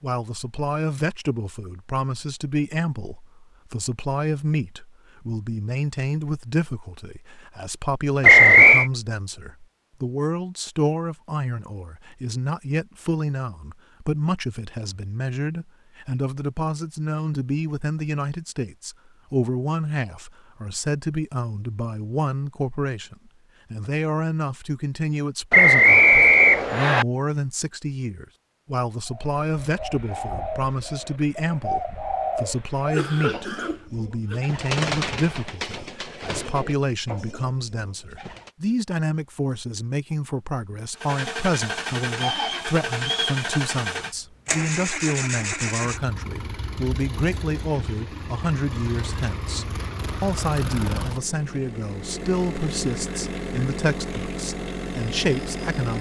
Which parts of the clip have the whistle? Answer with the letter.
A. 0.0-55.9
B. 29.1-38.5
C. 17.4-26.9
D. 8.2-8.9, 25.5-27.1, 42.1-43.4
D.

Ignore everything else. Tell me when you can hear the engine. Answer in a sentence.
You can hear the engine from 41.0 to 55.9 s.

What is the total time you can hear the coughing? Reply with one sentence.
The coughing can be heard for 2 seconds in total.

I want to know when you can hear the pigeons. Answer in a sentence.
You can hear the pigeons from 29.1 to 38.5 s.